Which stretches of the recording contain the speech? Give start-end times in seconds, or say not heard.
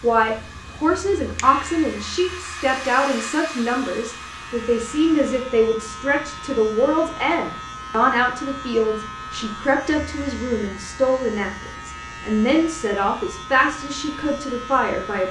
0.0-15.2.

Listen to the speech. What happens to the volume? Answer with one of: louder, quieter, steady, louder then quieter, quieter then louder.
steady.